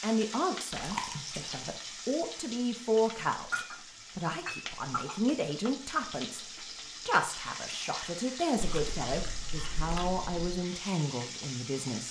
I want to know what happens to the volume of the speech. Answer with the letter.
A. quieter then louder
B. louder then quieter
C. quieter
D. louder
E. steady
E.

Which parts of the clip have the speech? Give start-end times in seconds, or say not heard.
0.0-12.0.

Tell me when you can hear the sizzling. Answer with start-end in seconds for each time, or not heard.
0.0-12.0.